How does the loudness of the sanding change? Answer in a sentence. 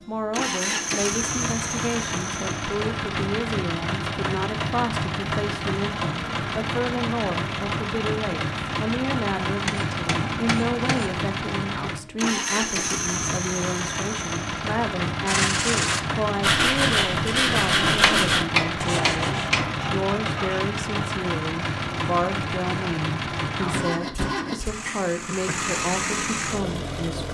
The volume of the sanding goes down.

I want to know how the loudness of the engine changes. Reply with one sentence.
The loudness of the engine stays about the same.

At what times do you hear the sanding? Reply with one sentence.
You can hear the sanding from 15.2 to 20.6 s.